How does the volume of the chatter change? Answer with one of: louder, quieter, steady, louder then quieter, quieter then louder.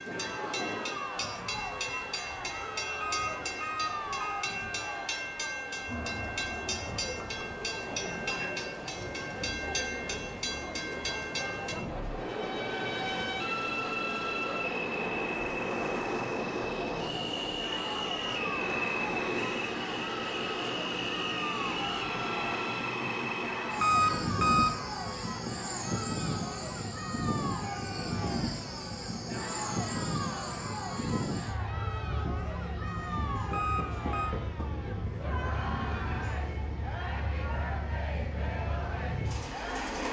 steady.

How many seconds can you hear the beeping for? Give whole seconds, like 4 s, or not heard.
3 s.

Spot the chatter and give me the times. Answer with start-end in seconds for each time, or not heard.
0.1-40.0.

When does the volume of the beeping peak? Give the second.
24 s.